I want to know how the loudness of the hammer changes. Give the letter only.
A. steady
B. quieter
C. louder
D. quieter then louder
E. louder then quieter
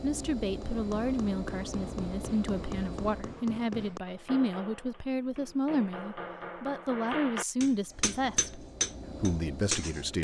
C.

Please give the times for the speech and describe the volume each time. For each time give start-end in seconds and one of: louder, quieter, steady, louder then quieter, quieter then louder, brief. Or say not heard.
0.0-10.2 steady.